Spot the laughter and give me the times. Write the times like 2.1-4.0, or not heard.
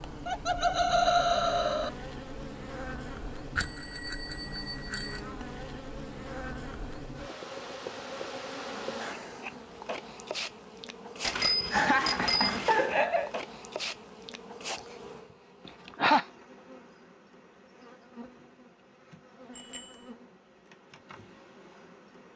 0.2-1.9, 11.7-13.3, 15.7-16.2.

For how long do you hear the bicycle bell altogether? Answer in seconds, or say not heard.
4 s.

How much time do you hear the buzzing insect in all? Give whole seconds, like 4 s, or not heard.
22 s.